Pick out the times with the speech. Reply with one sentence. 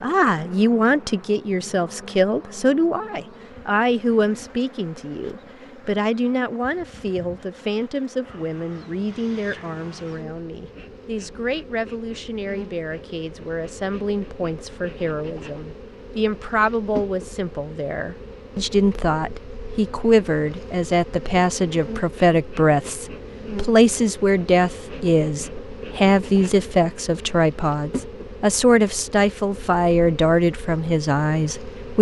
The speech can be heard from 0.0 to 31.9 s.